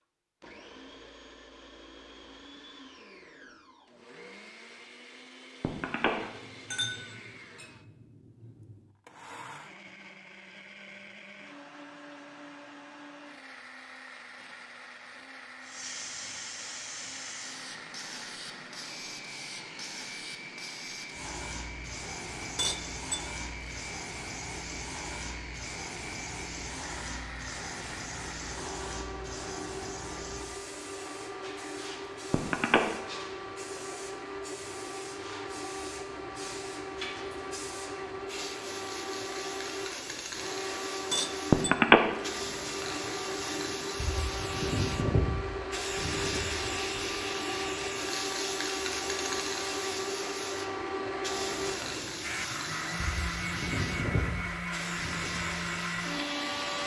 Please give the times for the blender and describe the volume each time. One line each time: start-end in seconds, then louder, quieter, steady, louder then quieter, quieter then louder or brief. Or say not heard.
0.4-56.8 louder.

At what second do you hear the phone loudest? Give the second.
42 s.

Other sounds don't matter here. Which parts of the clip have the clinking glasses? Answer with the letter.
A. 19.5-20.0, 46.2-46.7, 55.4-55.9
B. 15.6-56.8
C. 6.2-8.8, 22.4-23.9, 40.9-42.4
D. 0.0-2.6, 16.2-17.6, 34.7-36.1
C.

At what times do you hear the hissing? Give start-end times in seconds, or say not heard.
15.6-56.8.